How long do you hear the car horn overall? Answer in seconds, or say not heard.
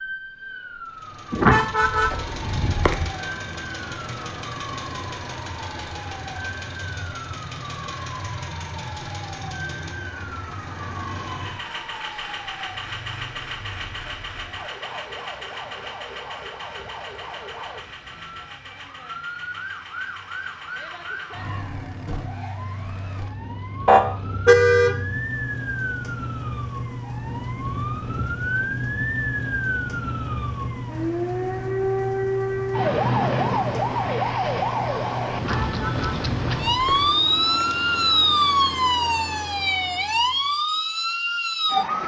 5 s.